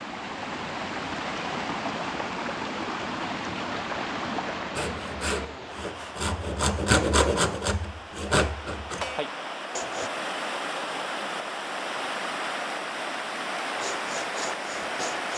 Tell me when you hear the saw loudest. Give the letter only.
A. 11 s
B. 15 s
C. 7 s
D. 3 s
C.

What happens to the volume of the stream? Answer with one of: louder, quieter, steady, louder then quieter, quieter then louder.
quieter then louder.